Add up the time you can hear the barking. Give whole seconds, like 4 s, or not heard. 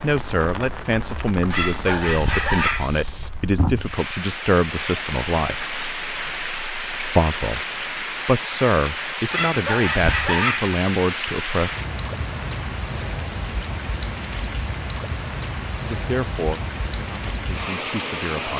3 s.